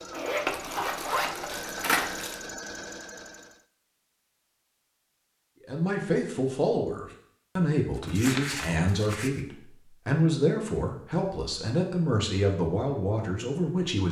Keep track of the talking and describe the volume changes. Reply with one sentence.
The volume of the talking stays about the same.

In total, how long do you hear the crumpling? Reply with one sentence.
The crumpling can be heard for 3 seconds in total.